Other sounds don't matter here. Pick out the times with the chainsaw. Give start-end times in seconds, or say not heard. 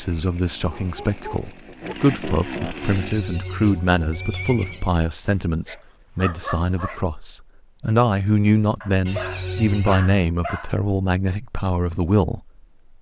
0.0-3.2.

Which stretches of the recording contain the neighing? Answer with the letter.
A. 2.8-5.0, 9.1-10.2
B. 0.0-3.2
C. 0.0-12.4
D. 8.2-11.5
A.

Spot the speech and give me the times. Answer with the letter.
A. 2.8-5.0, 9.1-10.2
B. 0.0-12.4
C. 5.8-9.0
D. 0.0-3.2
B.